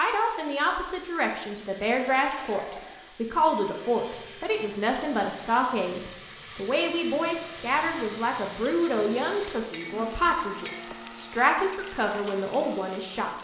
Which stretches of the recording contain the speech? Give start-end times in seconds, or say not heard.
0.0-13.3.